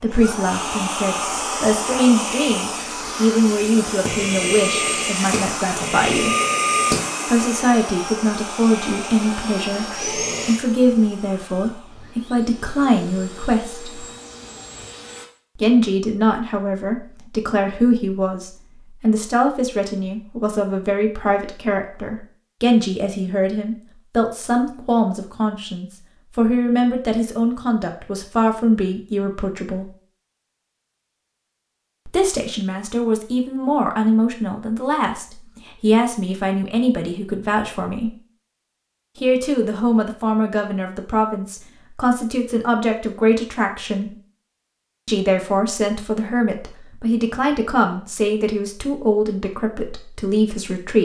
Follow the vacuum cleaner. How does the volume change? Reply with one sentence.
The loudness of the vacuum cleaner goes down.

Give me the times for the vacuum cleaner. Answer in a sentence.
You can hear the vacuum cleaner from 0.0 to 15.2 s.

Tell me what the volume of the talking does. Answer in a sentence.
The volume of the talking stays about the same.